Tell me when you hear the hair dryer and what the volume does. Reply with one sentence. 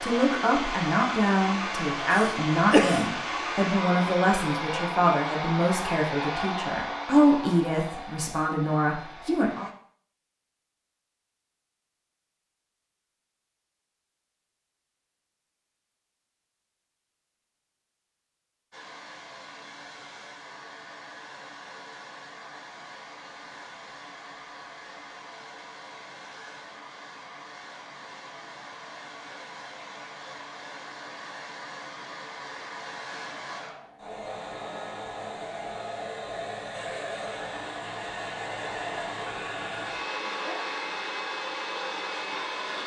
The hair dryer can be heard from 0.0 to 9.8 s, getting quieter; and from 18.7 to 42.8 s, getting louder.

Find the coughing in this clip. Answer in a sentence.
You can hear the coughing from 2.1 to 3.0 s.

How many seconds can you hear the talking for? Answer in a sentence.
The talking can be heard for 10 seconds in total.